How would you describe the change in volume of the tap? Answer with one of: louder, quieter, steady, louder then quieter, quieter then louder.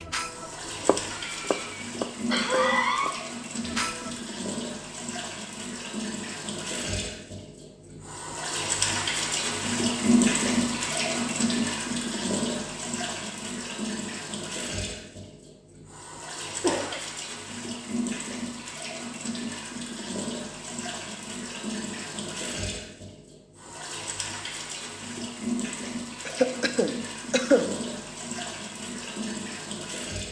louder then quieter.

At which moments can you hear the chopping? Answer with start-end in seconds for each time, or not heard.
0.0-4.2.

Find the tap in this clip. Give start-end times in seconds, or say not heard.
0.0-30.2.